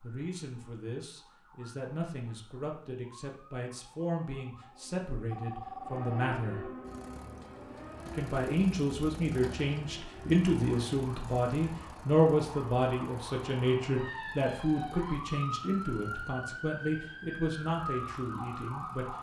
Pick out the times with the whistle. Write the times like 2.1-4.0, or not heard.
not heard.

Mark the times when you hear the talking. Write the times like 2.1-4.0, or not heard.
0.0-6.7, 8.1-19.1.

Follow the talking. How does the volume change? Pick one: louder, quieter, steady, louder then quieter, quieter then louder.
louder then quieter.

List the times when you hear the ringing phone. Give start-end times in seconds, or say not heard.
5.3-6.3.